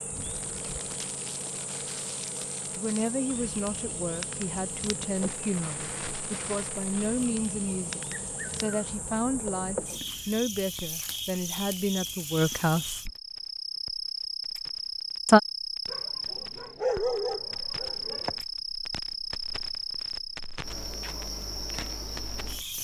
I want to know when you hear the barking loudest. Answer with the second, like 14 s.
17 s.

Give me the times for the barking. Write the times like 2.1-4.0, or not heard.
15.8-18.4.